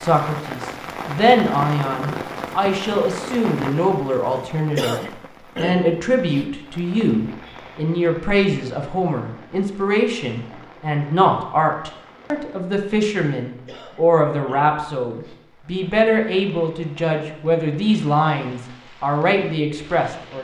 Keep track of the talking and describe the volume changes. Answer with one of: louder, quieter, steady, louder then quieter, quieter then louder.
steady.